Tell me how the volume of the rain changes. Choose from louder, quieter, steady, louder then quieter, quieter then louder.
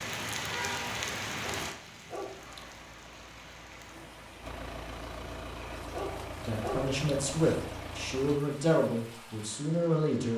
quieter.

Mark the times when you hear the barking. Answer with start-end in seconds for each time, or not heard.
1.4-2.9, 5.9-7.5.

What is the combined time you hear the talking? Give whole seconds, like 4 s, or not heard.
4 s.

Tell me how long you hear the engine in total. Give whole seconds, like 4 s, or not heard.
6 s.